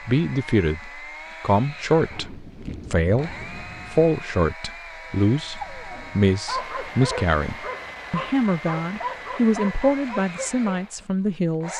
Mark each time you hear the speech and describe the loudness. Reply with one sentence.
The speech can be heard from 0.0 to 11.7 s, at a steady volume.